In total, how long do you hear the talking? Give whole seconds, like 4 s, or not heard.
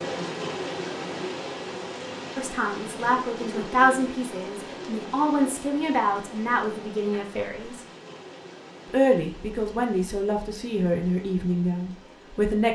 9 s.